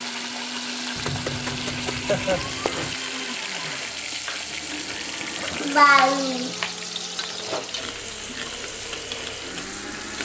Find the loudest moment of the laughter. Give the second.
6 s.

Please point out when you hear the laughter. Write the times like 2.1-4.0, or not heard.
2.0-2.5, 5.6-6.5.